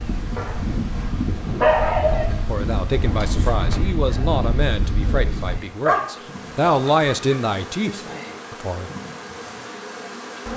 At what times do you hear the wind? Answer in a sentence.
The wind can be heard from 0.0 to 5.5 s.